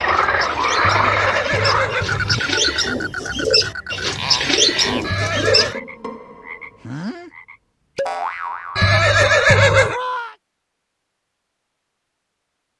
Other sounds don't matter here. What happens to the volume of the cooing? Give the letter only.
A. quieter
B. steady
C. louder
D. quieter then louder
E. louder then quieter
C.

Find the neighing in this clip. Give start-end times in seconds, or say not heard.
0.8-2.4, 5.0-5.8, 8.8-10.0.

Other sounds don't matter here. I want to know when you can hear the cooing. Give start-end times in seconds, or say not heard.
0.0-5.8.